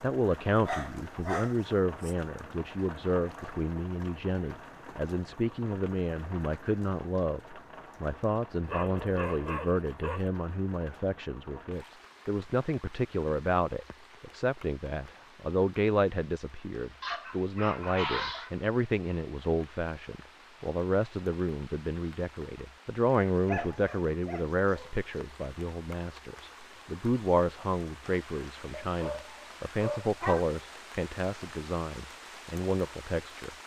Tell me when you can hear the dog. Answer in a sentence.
The dog can be heard from 0.7 to 2.1 s, from 8.7 to 10.3 s, from 17.0 to 18.5 s, from 23.4 to 24.9 s and from 28.7 to 30.6 s.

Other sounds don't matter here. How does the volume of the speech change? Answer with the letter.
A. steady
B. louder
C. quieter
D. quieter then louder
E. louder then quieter
A.